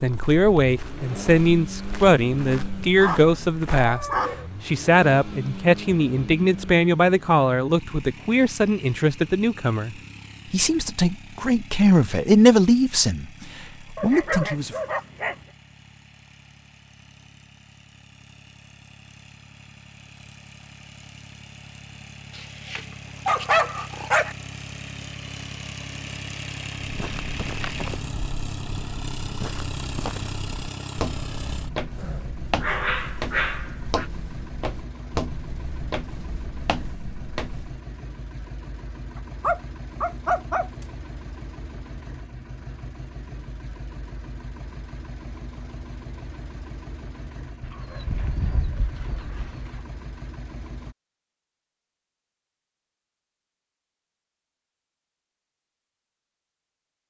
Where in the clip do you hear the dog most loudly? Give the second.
23 s.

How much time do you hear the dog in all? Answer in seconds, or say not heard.
11 s.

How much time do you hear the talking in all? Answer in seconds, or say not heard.
15 s.